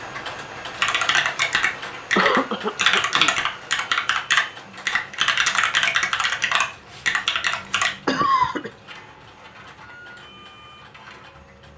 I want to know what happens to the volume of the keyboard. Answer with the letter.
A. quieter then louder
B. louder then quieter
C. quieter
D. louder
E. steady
E.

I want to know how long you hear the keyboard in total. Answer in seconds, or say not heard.
7 s.